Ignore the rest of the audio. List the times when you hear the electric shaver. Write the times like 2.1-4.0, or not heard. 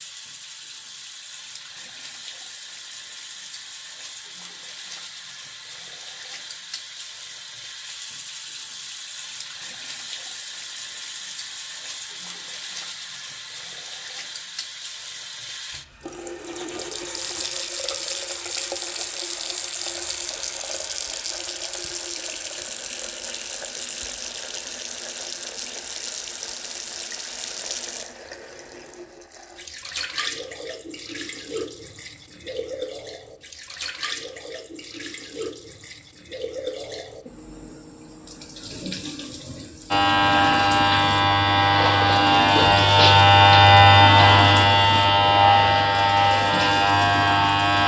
39.9-47.8.